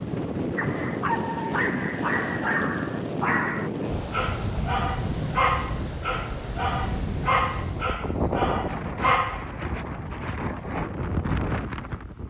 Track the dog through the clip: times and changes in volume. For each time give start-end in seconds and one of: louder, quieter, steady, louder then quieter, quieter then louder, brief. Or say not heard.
0.6-9.5 steady.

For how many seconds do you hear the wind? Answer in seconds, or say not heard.
12 s.